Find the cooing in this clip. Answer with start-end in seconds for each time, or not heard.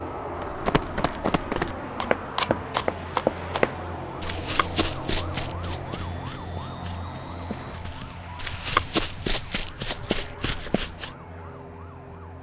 not heard.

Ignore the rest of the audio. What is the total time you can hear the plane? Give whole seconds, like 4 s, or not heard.
12 s.